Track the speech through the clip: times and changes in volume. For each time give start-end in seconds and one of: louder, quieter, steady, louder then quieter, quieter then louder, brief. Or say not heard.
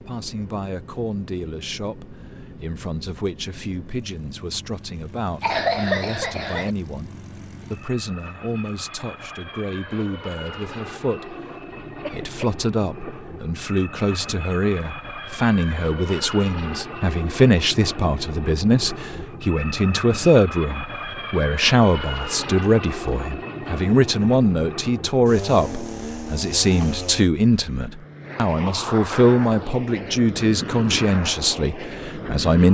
0.0-32.6 louder.